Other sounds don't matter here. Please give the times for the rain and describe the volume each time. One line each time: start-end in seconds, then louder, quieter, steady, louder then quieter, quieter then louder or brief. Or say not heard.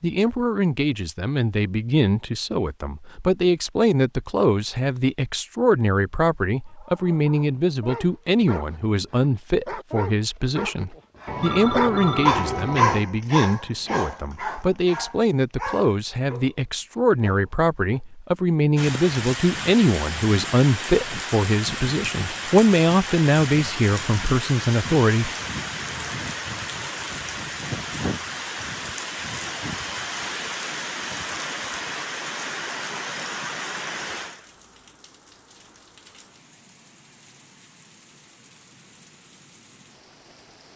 18.8-40.7 quieter.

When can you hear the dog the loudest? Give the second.
13 s.